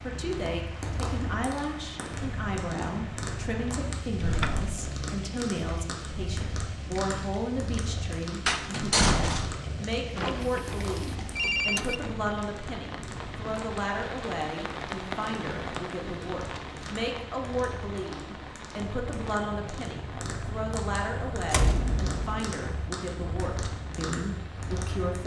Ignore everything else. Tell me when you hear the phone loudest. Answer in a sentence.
The loudest moment of the phone is at 12 seconds.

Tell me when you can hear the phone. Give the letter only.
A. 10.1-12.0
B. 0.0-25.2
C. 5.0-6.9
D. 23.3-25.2
A.